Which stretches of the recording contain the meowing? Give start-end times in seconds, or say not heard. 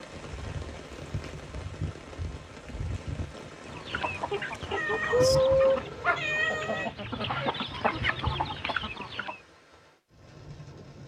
4.7-6.9.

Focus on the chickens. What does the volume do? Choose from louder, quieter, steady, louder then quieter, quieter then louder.
louder then quieter.